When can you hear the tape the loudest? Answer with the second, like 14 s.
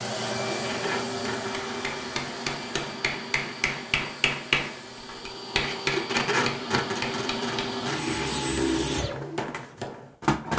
6 s.